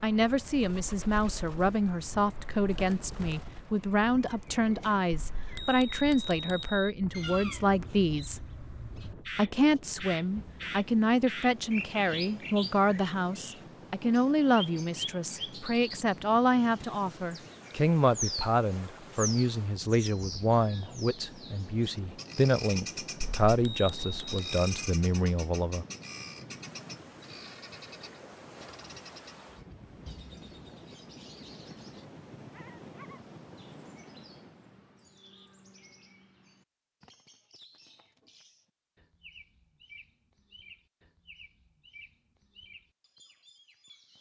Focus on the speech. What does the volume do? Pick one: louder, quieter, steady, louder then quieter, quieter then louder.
steady.